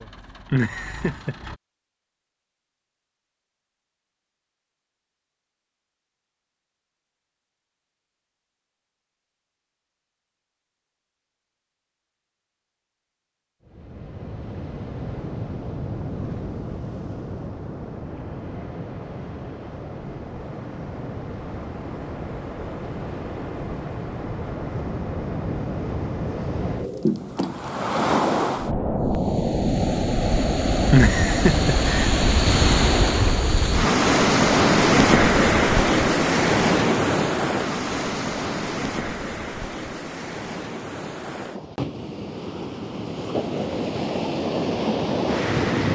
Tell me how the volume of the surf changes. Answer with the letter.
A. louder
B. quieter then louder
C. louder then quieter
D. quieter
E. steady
C.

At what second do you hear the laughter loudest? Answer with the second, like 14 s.
31 s.